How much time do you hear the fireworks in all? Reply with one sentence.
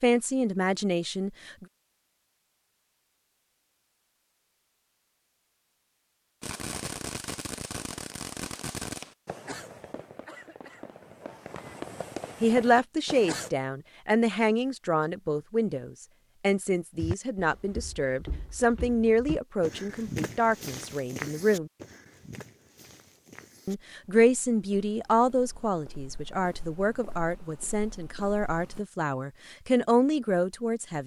You can hear the fireworks for 7 seconds altogether.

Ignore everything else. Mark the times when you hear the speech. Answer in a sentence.
You can hear the speech from 0.0 to 1.6 s, from 12.4 to 21.7 s and from 23.6 to 31.0 s.